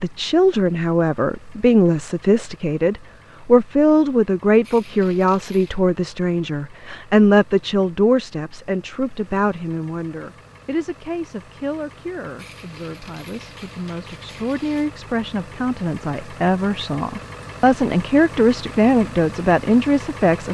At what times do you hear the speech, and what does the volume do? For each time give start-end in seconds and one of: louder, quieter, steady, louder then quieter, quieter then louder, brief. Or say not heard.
0.0-20.4 quieter then louder.